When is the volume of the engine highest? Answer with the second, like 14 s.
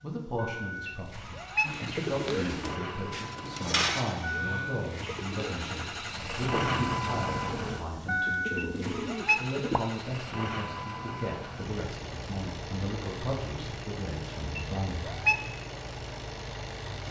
7 s.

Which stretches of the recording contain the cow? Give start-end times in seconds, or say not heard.
not heard.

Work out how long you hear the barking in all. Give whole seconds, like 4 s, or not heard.
not heard.